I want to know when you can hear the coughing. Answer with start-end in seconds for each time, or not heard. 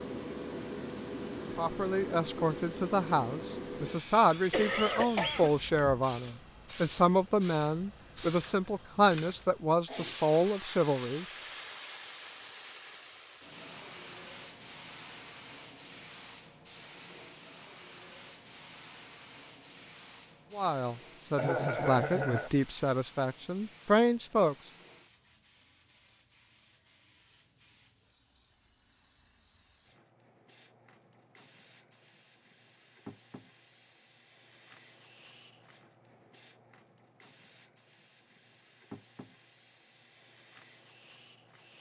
4.5-5.9, 21.4-22.5.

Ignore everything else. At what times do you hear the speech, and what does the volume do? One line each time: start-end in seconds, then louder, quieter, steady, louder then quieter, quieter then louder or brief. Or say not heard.
1.6-11.2 steady
20.5-24.6 louder.